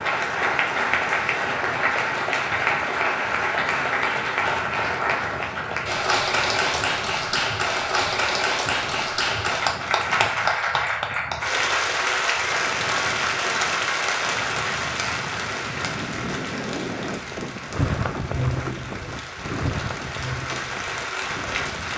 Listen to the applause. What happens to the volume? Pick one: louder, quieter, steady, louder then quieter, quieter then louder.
quieter.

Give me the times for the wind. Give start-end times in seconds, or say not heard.
0.0-21.9.